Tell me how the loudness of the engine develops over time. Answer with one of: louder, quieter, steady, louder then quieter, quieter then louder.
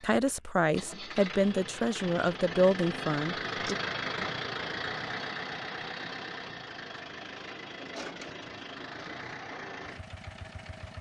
louder then quieter.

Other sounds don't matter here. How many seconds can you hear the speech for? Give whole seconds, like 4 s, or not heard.
4 s.